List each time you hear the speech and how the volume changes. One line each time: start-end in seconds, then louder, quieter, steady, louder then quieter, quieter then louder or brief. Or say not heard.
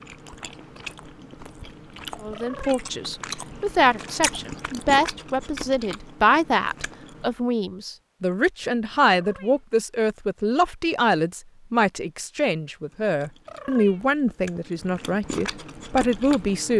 2.2-16.7 steady.